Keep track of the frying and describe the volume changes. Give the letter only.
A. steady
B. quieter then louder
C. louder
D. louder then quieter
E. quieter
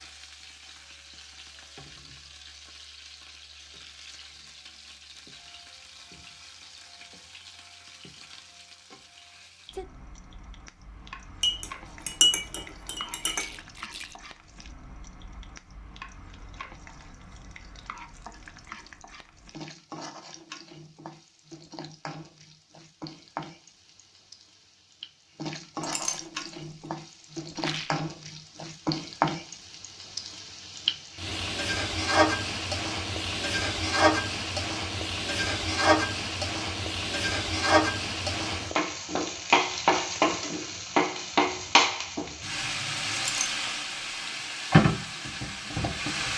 C.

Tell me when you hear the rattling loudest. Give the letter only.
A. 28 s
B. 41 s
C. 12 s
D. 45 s
A.